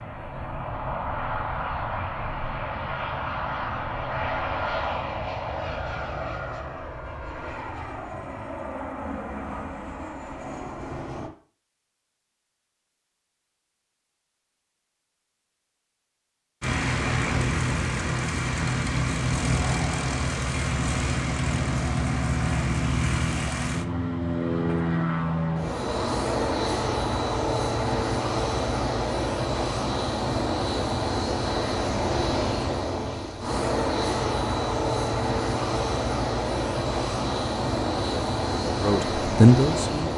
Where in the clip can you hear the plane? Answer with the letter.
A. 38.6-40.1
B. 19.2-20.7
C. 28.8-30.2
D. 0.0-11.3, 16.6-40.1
D.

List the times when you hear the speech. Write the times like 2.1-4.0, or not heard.
38.6-40.1.